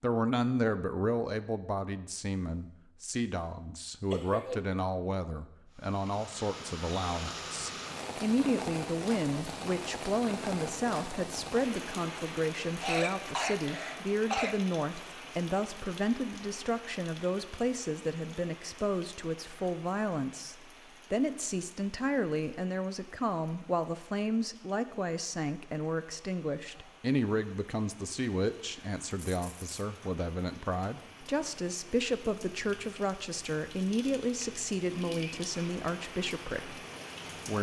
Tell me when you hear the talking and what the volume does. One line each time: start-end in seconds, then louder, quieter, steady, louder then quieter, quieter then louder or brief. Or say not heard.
0.0-36.8 steady.